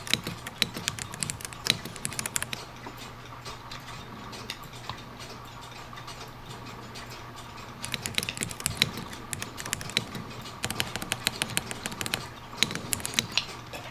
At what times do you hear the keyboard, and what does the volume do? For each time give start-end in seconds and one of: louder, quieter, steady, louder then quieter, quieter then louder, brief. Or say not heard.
0.0-2.5 brief
7.8-13.3 quieter then louder.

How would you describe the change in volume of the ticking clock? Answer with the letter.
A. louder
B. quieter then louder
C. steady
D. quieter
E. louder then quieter
A.